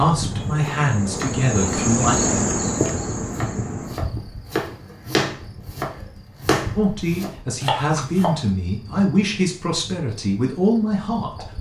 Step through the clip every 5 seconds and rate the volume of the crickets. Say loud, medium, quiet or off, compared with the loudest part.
loud, quiet, quiet.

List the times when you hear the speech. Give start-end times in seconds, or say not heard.
0.0-2.2, 6.8-11.4.